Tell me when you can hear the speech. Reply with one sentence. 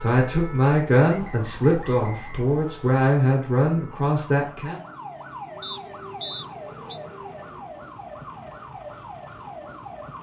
The speech can be heard from 0.0 to 4.8 s.